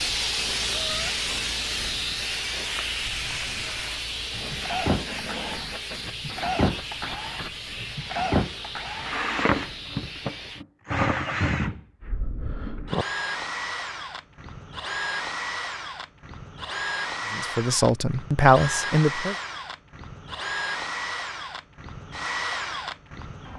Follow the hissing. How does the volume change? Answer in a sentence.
The volume of the hissing goes down.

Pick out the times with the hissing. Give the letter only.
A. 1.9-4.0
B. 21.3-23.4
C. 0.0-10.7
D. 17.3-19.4
C.